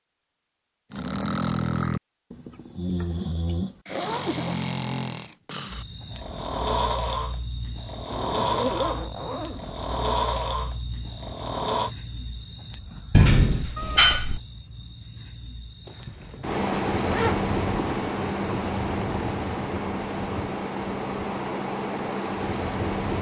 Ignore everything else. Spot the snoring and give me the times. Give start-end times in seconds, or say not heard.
0.9-11.9.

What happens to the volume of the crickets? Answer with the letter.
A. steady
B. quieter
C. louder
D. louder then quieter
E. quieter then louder
B.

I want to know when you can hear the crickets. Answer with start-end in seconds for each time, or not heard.
5.7-23.1.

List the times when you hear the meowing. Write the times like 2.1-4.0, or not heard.
13.1-14.4.